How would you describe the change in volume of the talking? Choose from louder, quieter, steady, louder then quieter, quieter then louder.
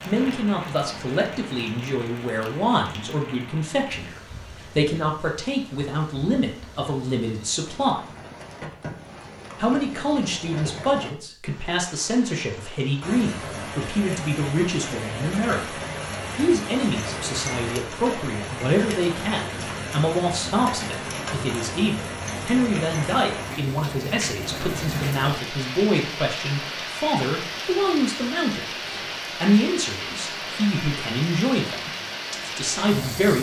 steady.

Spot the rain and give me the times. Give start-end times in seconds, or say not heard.
0.0-33.3.